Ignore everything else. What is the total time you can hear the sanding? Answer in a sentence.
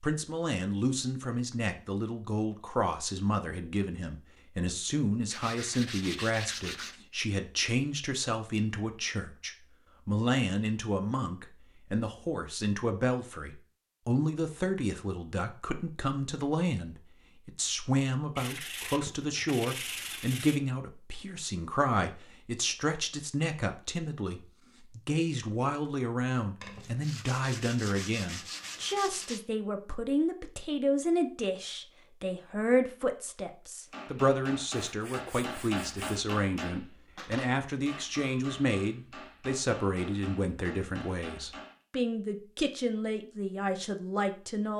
The sanding can be heard for 8 seconds in total.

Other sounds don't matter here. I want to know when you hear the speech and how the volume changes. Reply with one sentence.
You can hear the speech from 0.0 to 44.7 s, at a steady volume.